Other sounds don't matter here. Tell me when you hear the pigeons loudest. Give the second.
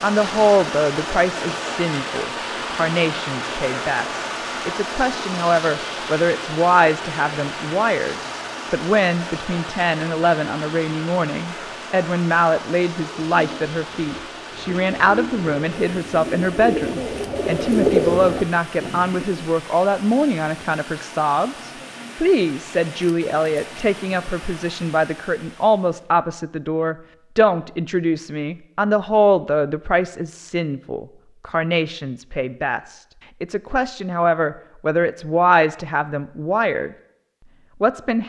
18 s.